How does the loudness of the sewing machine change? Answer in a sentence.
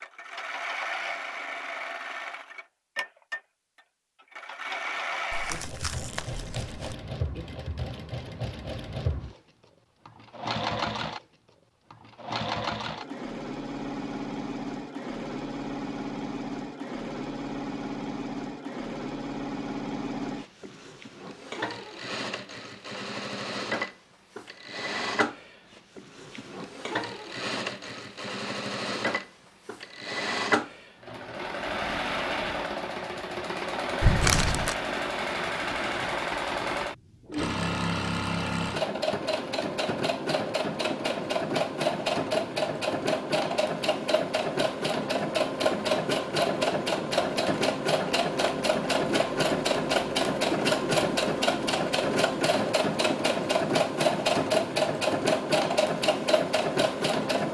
The volume of the sewing machine goes up.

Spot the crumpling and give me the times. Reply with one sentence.
The crumpling can be heard from 5.3 to 7.0 s and from 34.0 to 34.8 s.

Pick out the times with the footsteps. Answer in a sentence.
The footsteps can't be heard in this clip.